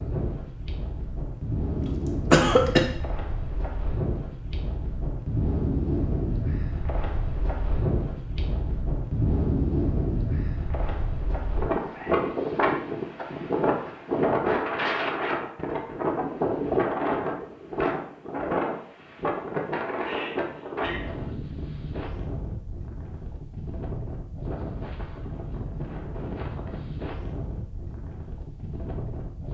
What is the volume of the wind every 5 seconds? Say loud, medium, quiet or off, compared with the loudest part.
medium, loud, loud, loud, medium, medium.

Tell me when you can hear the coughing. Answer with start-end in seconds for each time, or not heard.
1.8-2.8.